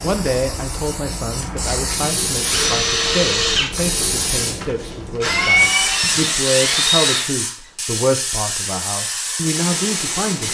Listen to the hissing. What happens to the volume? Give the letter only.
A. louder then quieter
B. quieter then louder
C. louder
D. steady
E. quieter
D.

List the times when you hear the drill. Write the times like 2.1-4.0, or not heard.
2.4-7.2.